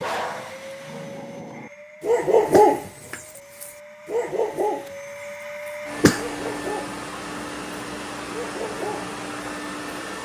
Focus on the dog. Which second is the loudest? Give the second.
3 s.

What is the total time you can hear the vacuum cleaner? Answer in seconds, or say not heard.
10 s.